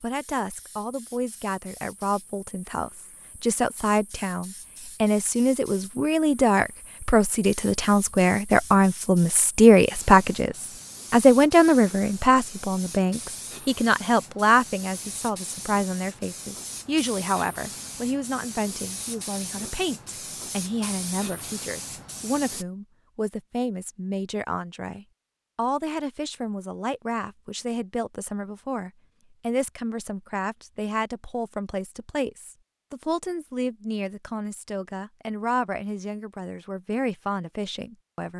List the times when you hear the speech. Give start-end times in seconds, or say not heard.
0.0-38.3.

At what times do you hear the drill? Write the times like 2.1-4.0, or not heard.
not heard.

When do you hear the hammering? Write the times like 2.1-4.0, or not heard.
not heard.